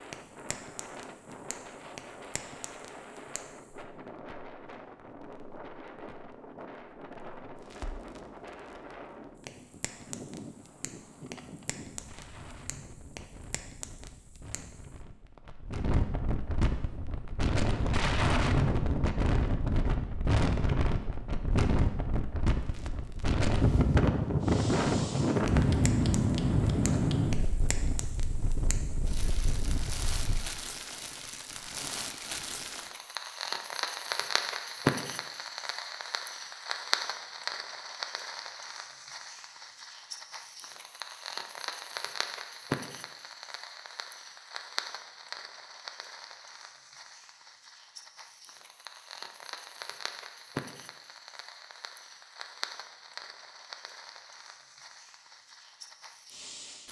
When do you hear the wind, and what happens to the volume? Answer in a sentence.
The wind can be heard from 0.0 to 30.4 s, getting louder.